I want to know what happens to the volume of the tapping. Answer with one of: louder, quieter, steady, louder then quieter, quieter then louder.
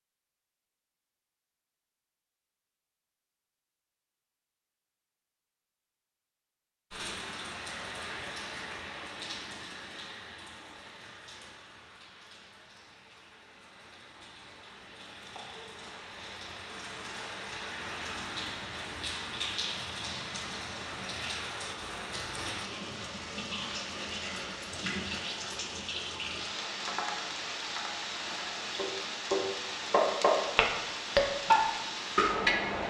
louder.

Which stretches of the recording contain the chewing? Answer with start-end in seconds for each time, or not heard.
not heard.